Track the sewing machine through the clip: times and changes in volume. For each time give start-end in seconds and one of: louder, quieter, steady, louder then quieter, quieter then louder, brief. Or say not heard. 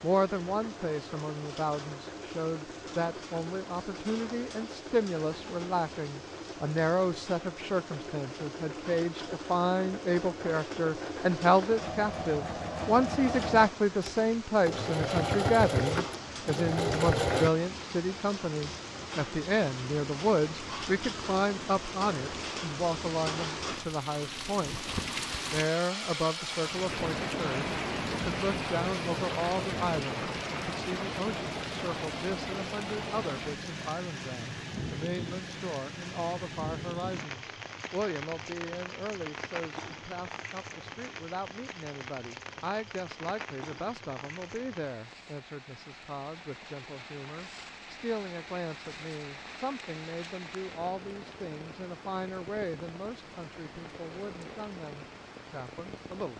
0.0-17.5 louder.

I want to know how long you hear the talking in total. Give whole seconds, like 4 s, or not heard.
56 s.